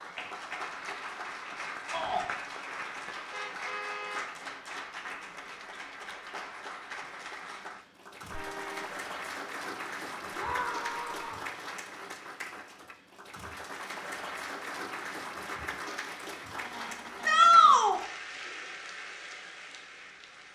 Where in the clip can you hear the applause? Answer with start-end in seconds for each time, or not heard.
0.0-20.4.